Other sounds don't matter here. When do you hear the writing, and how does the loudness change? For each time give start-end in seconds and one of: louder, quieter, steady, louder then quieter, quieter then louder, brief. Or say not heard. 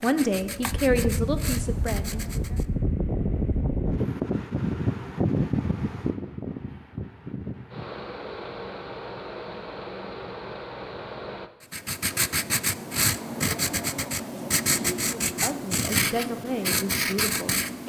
0.0-2.7 brief
11.6-17.8 steady.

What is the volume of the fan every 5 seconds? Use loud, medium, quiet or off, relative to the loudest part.
loud, loud, medium, off.